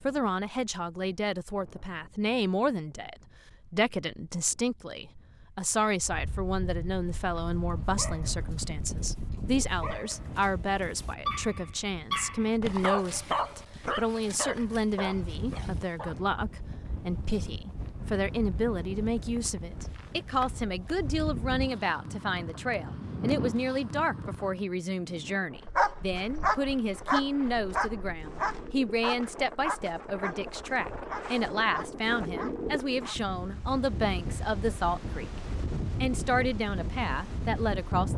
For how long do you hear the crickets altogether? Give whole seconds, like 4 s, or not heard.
not heard.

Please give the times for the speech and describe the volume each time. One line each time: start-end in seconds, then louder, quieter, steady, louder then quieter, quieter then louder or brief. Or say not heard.
0.0-38.1 steady.